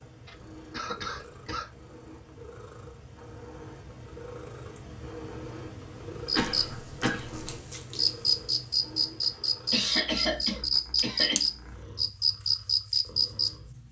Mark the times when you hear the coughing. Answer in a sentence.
The coughing can be heard from 0.2 to 1.7 s, from 6.3 to 7.6 s and from 9.7 to 11.4 s.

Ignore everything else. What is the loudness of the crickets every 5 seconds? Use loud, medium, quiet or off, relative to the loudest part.
off, loud, loud.